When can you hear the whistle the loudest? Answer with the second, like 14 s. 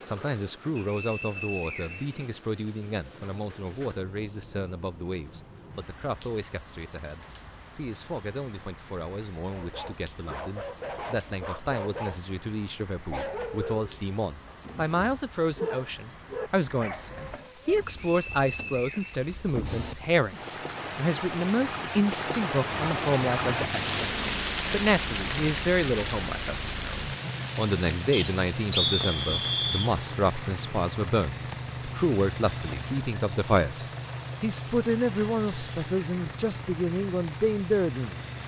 29 s.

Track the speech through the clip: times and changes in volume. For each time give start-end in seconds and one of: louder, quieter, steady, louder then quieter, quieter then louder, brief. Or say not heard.
0.0-38.4 louder.